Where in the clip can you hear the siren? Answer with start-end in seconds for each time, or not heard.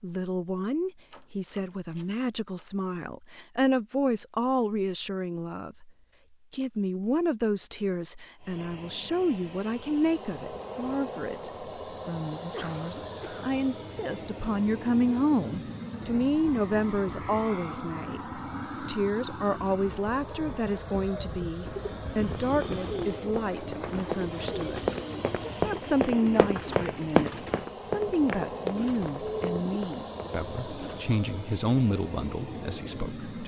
not heard.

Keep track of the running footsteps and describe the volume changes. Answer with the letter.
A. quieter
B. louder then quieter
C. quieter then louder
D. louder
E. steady
B.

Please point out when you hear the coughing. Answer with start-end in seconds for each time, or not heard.
12.5-13.5.